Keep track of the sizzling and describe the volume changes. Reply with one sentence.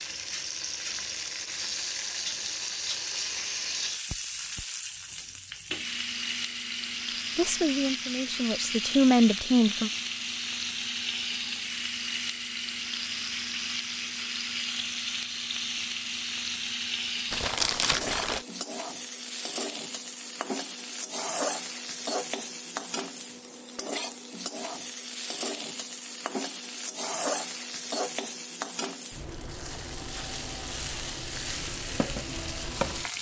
The loudness of the sizzling stays about the same.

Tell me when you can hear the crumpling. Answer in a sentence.
You can hear the crumpling from 17.3 to 18.4 s.